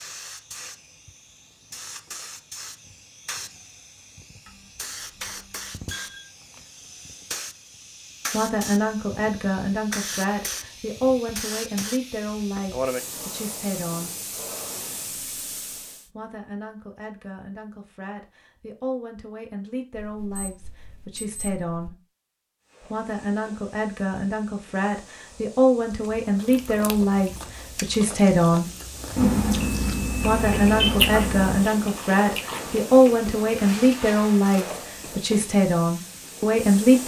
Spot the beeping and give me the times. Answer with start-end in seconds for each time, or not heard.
4.5-6.2, 19.9-21.9, 29.1-31.6.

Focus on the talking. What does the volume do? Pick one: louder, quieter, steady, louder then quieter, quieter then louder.
quieter then louder.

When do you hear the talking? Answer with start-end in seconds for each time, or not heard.
8.3-14.2, 16.1-21.9, 22.8-28.7, 30.1-37.0.